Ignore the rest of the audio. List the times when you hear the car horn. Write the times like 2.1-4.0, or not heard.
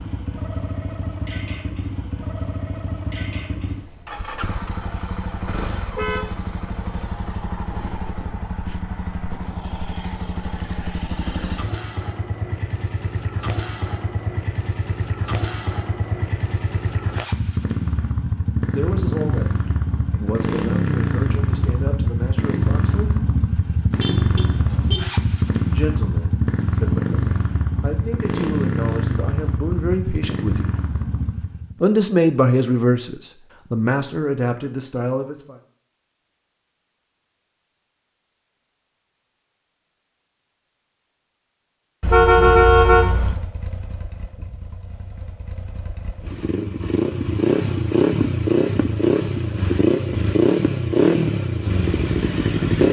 6.0-7.0, 24.0-25.1, 42.0-43.4.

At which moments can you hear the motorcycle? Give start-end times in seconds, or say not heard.
0.0-31.8, 42.1-52.8.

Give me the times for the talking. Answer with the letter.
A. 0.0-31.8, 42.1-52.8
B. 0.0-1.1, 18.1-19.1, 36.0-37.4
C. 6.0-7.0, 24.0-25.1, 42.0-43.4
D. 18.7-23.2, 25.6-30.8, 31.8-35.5
D.